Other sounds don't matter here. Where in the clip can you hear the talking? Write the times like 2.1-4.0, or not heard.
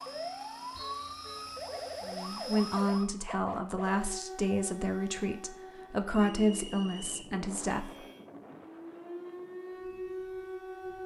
2.0-7.8.